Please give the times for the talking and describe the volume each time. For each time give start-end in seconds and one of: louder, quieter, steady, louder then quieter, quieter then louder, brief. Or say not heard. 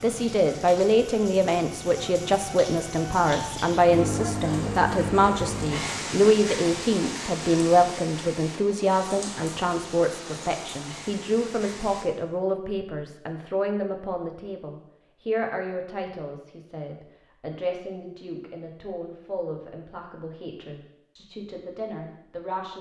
0.0-22.7 quieter.